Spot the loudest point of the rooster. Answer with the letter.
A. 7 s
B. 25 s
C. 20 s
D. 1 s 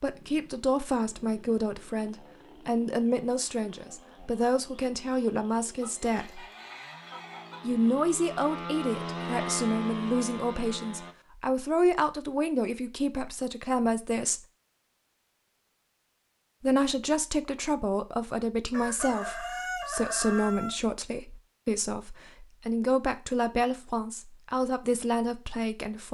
C.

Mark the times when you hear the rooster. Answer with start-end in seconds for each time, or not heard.
5.8-7.7, 18.7-20.8.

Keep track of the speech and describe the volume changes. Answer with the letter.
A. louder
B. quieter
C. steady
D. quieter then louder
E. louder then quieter
C.